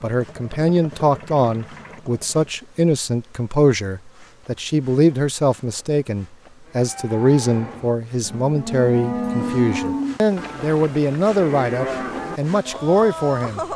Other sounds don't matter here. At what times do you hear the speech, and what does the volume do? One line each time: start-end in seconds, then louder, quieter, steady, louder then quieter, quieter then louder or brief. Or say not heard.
0.0-13.6 steady.